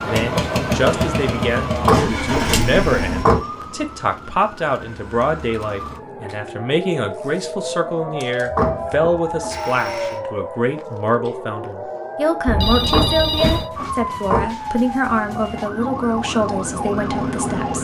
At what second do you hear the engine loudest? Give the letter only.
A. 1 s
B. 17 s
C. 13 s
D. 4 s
A.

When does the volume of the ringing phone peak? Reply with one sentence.
The loudest moment of the ringing phone is at 13 seconds.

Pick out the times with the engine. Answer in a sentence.
You can hear the engine from 0.0 to 3.2 s and from 15.1 to 17.8 s.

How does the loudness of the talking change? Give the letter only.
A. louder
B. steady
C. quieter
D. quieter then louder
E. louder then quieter
B.